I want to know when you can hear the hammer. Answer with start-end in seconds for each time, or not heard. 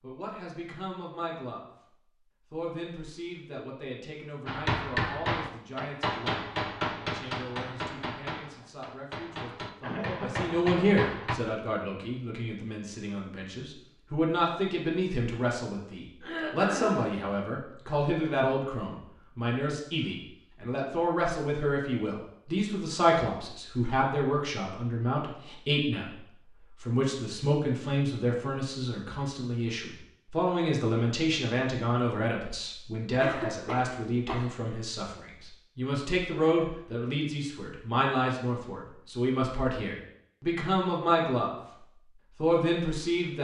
4.5-11.3.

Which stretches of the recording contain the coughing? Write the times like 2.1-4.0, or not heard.
9.8-10.7, 16.2-17.1, 33.2-34.5.